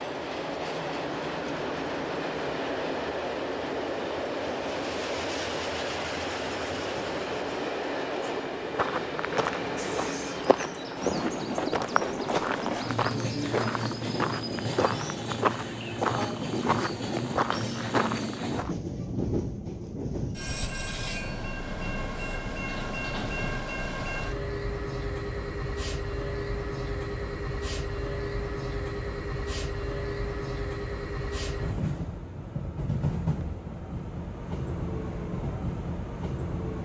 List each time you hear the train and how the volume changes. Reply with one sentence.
You can hear the train from 0.0 to 36.8 s, at a steady volume.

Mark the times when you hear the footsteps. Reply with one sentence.
The footsteps can be heard from 8.7 to 18.8 s.